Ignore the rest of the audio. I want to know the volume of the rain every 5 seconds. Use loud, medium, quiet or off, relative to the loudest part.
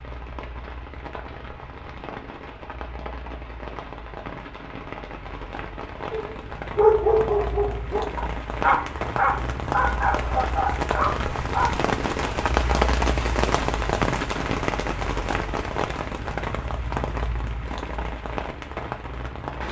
quiet, medium, loud, medium.